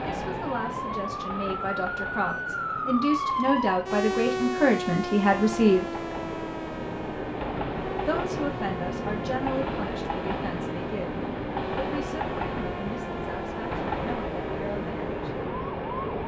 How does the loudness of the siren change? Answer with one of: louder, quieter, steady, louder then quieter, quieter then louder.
quieter.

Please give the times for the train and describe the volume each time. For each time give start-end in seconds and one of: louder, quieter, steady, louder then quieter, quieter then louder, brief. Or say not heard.
0.0-16.2 louder.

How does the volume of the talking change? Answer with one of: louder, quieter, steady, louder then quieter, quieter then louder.
louder then quieter.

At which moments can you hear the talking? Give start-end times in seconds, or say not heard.
0.0-5.8, 8.1-15.1.